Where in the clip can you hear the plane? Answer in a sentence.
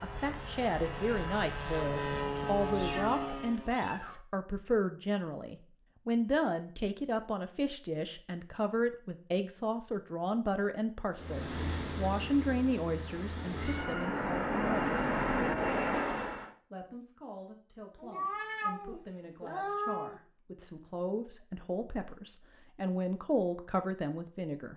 You can hear the plane from 0.0 to 3.8 s and from 11.2 to 16.5 s.